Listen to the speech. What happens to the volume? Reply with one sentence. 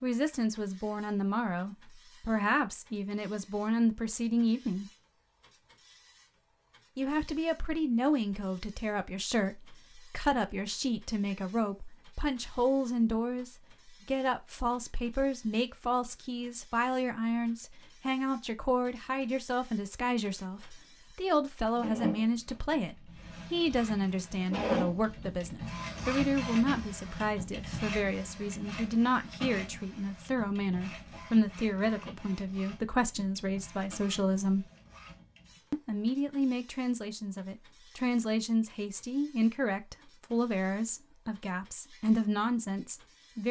The volume of the speech stays about the same.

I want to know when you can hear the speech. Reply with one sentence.
You can hear the speech from 0.0 to 4.8 s, from 7.0 to 34.6 s and from 35.7 to 43.4 s.